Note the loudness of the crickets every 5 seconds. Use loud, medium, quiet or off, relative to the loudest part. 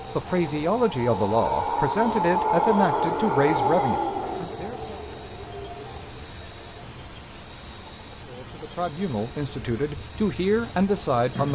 loud, medium, medium.